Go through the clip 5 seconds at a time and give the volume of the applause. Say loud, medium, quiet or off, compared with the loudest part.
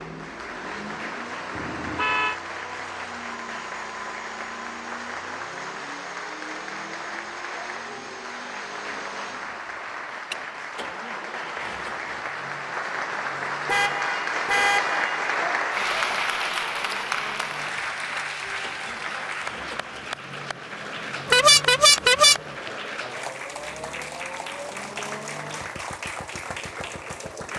medium, medium, loud, loud, medium, medium.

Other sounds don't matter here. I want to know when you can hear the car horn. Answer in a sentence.
You can hear the car horn from 1.6 to 2.4 s, from 13.7 to 15.2 s and from 21.2 to 22.4 s.